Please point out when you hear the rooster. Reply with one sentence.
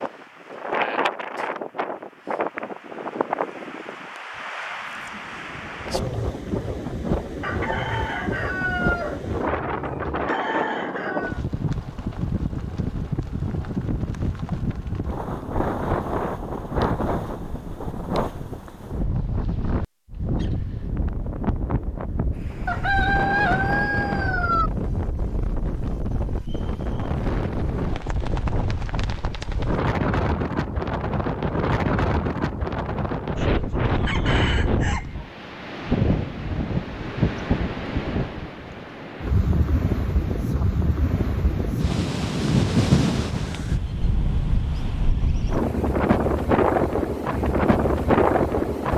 You can hear the rooster from 7.4 to 11.4 s, from 22.6 to 24.7 s and from 33.9 to 35.1 s.